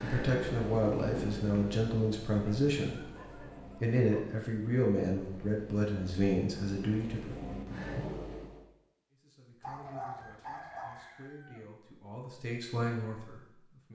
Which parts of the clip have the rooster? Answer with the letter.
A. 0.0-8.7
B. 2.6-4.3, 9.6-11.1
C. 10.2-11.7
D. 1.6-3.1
C.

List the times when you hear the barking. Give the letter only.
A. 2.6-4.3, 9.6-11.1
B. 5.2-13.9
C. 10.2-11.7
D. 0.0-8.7
A.